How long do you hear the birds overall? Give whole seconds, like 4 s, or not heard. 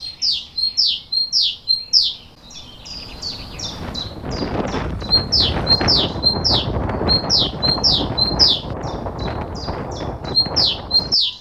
11 s.